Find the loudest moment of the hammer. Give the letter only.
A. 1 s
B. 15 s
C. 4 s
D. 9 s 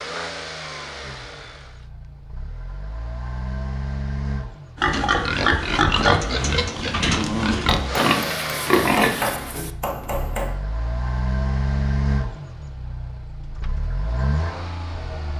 D.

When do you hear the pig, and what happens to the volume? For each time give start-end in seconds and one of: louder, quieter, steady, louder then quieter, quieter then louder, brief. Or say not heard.
4.8-9.7 steady.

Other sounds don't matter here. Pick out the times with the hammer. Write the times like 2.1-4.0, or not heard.
7.7-10.6.